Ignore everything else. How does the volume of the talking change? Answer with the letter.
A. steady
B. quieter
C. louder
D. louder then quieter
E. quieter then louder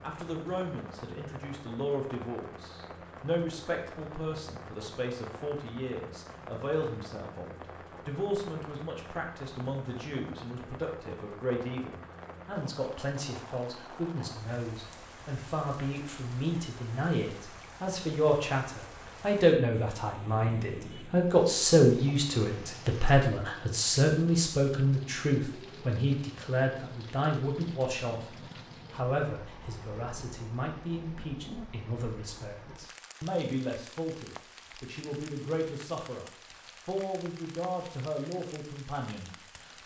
D.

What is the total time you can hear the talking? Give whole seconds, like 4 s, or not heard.
39 s.